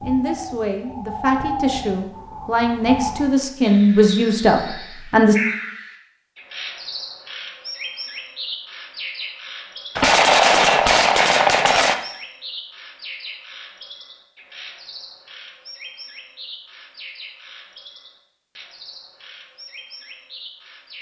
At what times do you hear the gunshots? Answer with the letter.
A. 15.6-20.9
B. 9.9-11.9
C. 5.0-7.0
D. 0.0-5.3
B.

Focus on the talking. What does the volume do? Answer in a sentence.
The loudness of the talking goes up.